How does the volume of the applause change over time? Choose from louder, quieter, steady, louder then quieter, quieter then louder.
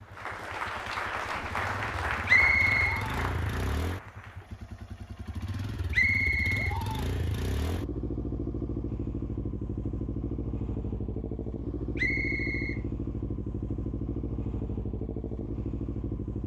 quieter.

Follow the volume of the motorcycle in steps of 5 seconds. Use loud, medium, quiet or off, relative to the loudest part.
medium, loud, loud, loud.